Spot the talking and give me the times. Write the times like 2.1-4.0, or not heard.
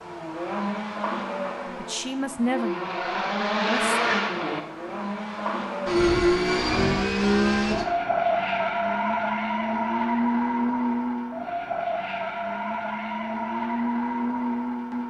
1.8-4.0.